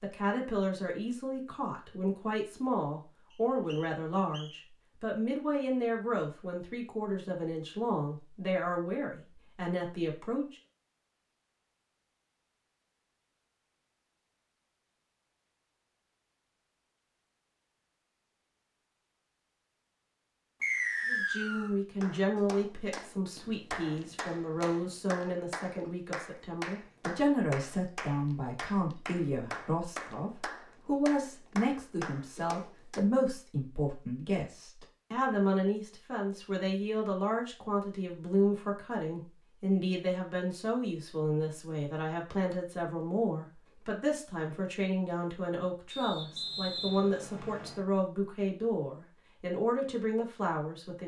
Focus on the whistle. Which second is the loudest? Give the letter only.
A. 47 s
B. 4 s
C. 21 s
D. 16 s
C.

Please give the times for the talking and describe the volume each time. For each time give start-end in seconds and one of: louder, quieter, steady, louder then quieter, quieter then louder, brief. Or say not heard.
0.0-10.6 steady
21.1-51.0 steady.